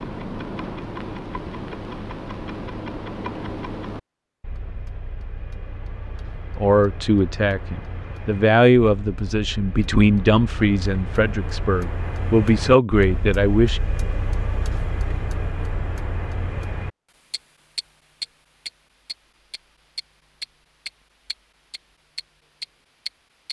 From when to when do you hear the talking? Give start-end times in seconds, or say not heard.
6.5-13.8.